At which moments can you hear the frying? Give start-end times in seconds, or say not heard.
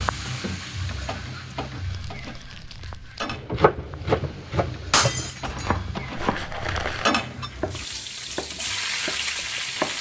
0.0-9.9.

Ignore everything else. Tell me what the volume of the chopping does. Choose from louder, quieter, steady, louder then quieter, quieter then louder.
quieter.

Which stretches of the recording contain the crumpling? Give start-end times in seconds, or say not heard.
1.9-3.4, 6.2-7.1.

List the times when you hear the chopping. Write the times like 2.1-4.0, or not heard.
3.3-9.9.